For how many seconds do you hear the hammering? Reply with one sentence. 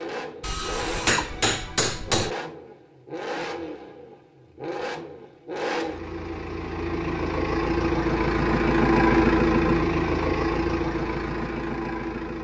The hammering can be heard for 2 seconds in total.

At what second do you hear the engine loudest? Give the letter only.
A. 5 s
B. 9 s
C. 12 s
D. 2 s
B.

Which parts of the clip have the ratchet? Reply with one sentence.
The ratchet can't be heard in this clip.